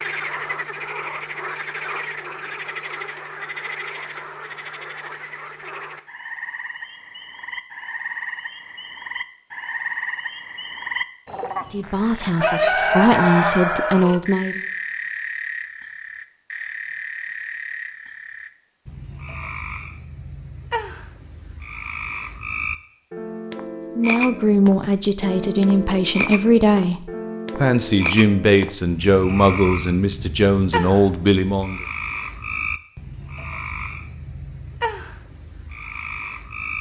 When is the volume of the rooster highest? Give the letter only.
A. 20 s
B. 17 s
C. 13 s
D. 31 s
C.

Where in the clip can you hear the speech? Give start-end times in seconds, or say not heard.
11.7-14.7, 23.9-31.9.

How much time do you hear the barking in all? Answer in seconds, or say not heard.
not heard.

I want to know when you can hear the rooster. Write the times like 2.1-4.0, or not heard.
12.3-14.2.